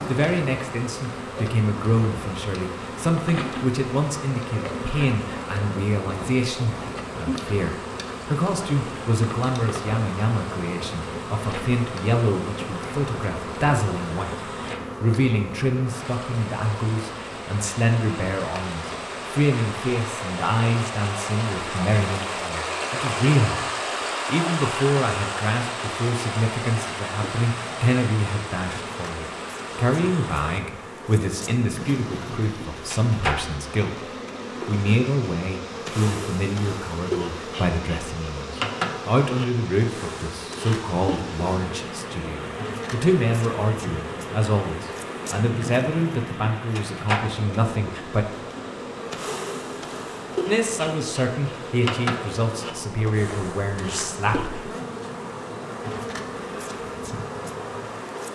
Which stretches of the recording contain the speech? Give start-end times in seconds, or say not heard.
0.1-23.6, 24.2-48.2, 50.5-54.5.